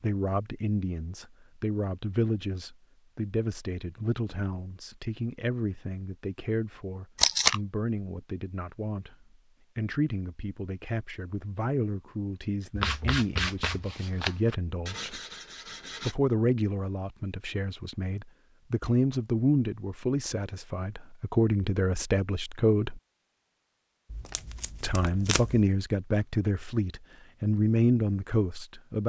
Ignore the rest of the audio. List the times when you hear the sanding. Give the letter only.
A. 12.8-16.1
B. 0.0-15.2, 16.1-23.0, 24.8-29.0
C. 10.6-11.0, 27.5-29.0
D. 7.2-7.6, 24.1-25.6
A.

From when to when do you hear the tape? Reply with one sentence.
The tape can be heard from 7.2 to 7.6 s and from 24.1 to 25.6 s.